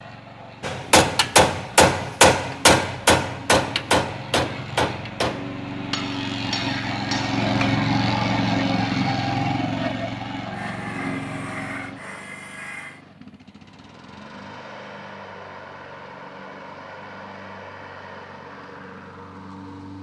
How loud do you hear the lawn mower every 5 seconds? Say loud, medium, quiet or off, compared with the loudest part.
quiet, loud, medium, quiet.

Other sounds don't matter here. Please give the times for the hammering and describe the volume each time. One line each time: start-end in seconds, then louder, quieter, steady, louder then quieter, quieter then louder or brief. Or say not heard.
0.6-7.8 quieter.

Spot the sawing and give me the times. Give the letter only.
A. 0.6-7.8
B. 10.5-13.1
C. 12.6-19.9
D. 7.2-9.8
B.